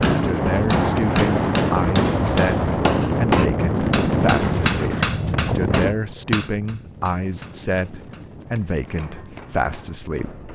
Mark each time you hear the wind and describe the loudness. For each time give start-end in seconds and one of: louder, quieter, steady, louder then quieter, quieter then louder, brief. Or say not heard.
0.0-10.5 quieter.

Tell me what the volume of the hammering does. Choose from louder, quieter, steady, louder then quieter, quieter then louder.
quieter.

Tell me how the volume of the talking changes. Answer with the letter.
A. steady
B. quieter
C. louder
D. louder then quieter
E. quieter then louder
A.